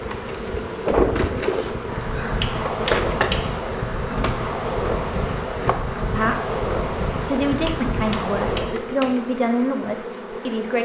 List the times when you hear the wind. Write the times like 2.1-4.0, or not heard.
0.0-8.8.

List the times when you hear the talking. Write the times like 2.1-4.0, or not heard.
6.1-10.8.